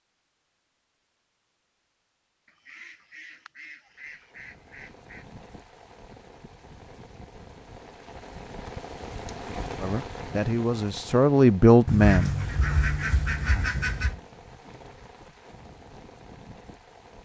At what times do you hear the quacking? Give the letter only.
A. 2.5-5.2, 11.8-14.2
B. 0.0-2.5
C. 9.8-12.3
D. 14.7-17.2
A.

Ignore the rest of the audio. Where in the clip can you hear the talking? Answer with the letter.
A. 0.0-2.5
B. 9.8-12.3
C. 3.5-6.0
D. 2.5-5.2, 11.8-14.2
B.